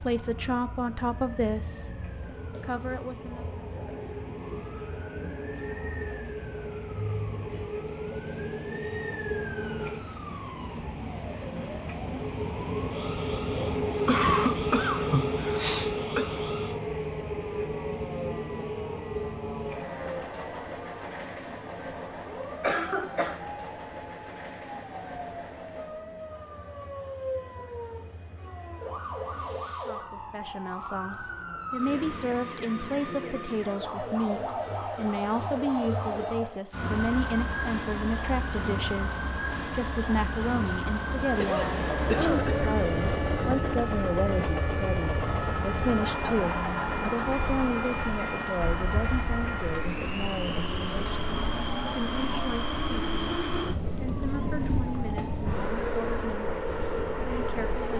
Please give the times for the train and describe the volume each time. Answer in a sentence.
The train can be heard from 0.0 to 30.1 s, getting louder then quieter; and from 41.0 to 57.9 s, at a steady volume.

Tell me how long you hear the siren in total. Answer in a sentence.
The siren can be heard for 58 seconds in total.